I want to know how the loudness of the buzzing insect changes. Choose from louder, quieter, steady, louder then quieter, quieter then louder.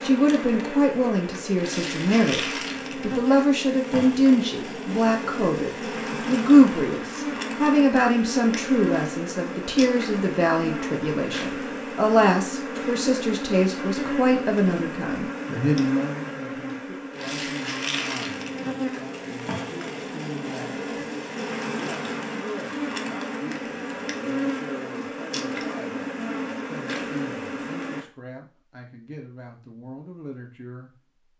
steady.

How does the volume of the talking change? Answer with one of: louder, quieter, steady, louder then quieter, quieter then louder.
quieter.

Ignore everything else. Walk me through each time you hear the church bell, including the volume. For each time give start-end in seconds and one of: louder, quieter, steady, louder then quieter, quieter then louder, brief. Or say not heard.
not heard.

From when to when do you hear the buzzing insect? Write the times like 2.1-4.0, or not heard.
0.0-28.1.